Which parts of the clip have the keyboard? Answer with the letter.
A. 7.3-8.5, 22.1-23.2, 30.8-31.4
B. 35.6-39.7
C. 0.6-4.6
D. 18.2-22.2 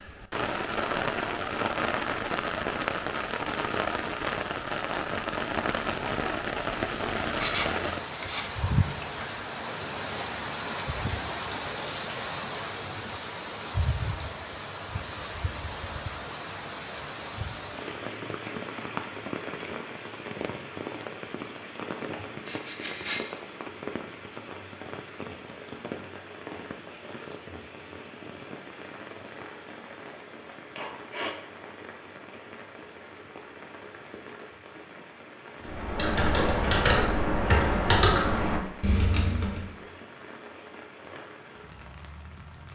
B.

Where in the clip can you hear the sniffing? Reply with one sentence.
You can hear the sniffing from 7.3 to 8.5 s, from 22.1 to 23.2 s and from 30.8 to 31.4 s.